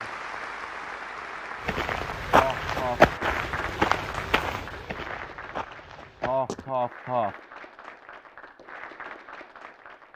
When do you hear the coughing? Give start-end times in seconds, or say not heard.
2.3-3.0, 6.2-7.3.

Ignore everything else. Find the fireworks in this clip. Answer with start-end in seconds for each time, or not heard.
not heard.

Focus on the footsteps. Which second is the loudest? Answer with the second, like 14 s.
3 s.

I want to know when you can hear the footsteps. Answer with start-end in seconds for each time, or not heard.
1.6-6.7.